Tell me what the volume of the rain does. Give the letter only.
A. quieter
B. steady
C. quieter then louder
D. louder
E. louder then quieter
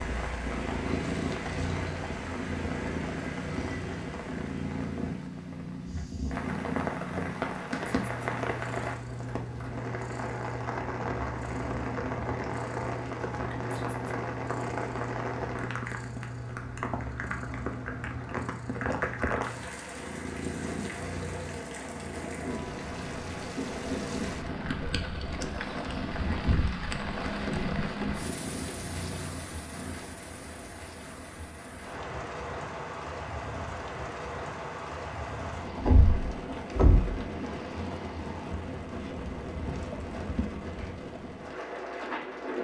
B.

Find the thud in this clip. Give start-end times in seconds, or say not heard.
35.8-37.2.